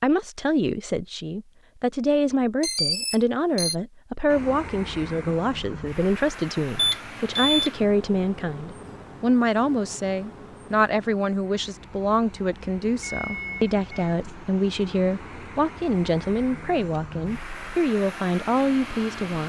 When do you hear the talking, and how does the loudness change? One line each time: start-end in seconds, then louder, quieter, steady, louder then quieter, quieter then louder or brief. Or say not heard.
0.0-19.4 steady.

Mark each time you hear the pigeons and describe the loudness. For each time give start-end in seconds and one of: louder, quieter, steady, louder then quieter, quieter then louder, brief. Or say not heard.
not heard.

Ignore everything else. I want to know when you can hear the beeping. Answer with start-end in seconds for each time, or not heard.
2.6-3.8, 6.8-7.7, 13.0-14.2.